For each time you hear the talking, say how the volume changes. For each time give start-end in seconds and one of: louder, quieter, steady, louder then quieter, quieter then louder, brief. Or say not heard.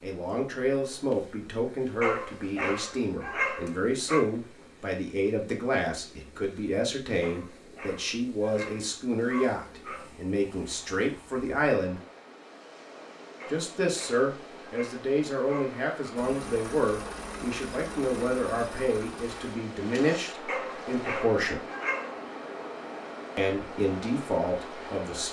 0.0-12.0 steady
13.4-21.6 steady
23.4-25.2 brief.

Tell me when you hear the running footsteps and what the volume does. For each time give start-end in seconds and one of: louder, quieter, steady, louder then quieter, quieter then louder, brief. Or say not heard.
not heard.